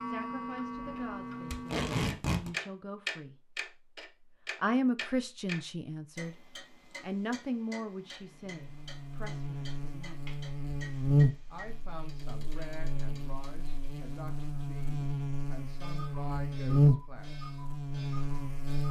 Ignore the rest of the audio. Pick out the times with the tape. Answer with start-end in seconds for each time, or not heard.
1.5-2.5.